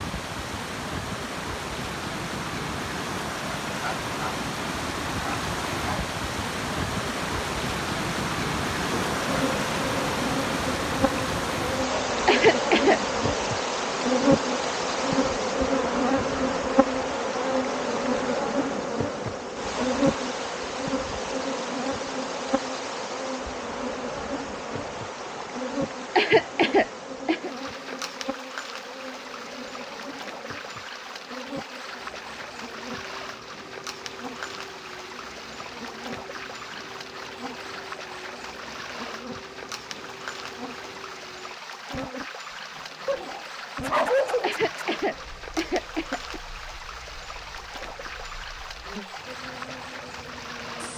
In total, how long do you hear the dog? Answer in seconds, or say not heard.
3 s.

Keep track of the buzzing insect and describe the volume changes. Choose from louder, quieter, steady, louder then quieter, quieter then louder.
quieter.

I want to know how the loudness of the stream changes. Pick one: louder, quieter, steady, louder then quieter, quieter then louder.
quieter.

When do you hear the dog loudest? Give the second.
44 s.